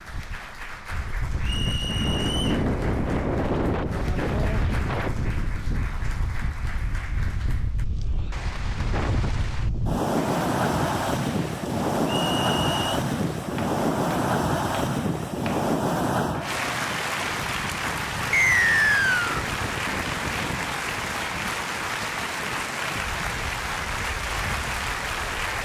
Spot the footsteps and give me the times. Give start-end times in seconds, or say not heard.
not heard.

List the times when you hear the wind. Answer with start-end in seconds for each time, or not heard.
0.0-25.6.